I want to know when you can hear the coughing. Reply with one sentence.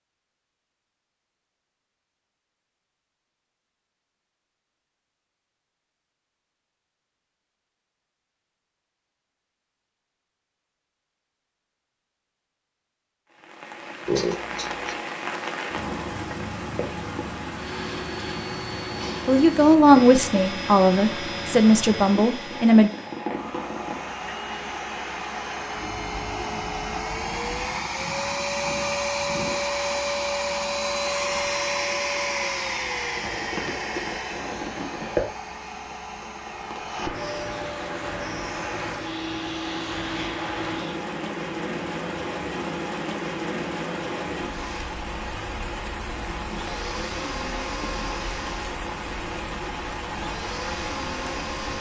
You can hear the coughing from 14.1 to 14.9 s.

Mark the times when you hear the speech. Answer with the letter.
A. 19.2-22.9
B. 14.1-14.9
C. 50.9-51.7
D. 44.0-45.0
A.